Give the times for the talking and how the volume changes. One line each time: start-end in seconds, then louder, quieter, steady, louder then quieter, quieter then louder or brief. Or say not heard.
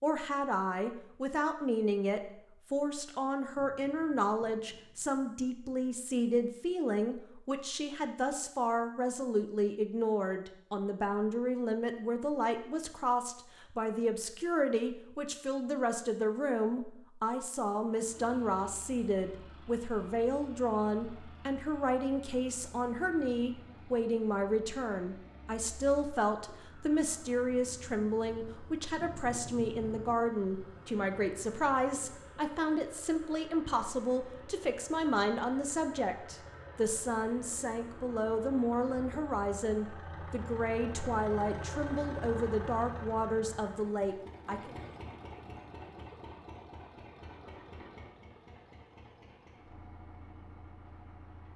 0.0-44.7 steady.